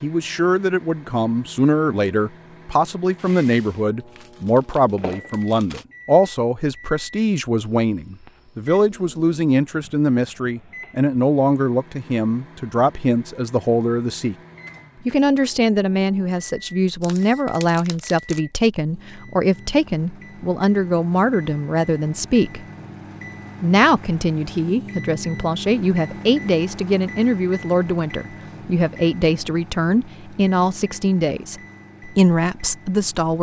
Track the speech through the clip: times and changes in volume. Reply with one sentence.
The speech can be heard from 0.0 to 14.3 s, at a steady volume; from 15.1 to 22.6 s, at a steady volume; and from 23.6 to 33.3 s, at a steady volume.